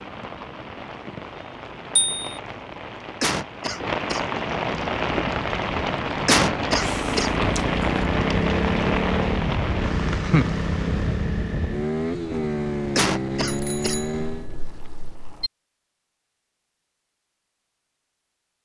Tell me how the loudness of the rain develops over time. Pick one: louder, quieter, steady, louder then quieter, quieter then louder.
louder.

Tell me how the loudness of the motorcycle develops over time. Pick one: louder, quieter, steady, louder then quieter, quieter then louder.
louder.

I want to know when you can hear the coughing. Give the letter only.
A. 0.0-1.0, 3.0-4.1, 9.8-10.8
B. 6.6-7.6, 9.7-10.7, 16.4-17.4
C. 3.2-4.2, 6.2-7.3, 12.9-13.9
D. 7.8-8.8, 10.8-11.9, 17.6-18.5
C.